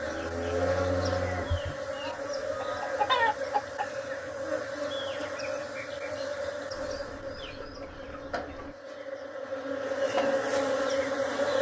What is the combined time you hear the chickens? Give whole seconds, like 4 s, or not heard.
3 s.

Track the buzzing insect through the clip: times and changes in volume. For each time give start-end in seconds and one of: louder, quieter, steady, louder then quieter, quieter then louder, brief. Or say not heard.
0.0-11.5 quieter then louder.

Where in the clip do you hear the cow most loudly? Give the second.
1 s.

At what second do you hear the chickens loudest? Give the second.
3 s.